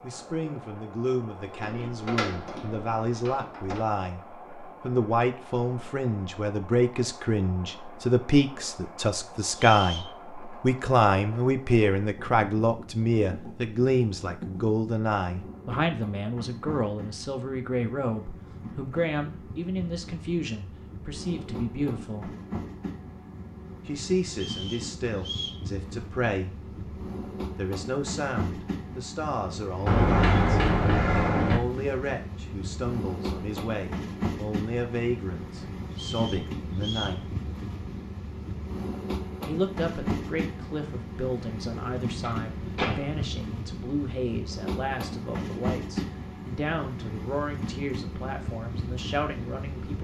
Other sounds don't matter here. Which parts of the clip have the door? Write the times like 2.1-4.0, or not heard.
1.5-3.9, 29.9-31.6, 41.7-43.2.